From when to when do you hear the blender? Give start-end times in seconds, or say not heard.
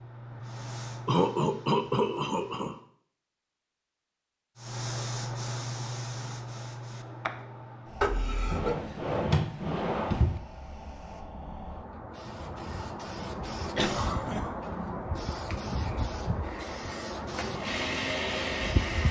16.4-19.0.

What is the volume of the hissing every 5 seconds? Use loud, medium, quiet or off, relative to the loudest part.
medium, loud, loud, loud.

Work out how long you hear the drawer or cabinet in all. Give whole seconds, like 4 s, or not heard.
2 s.